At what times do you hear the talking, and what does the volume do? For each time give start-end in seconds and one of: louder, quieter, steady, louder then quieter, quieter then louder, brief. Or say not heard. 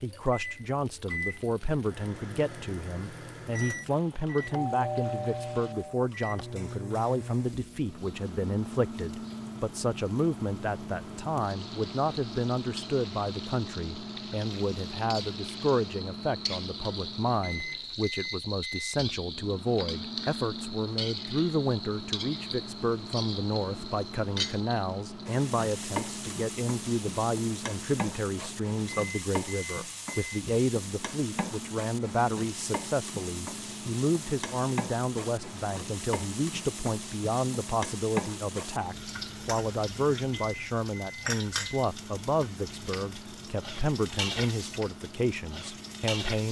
0.0-46.4 steady.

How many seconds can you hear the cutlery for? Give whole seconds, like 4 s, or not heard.
not heard.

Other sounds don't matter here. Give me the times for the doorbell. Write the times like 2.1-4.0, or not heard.
4.5-6.0.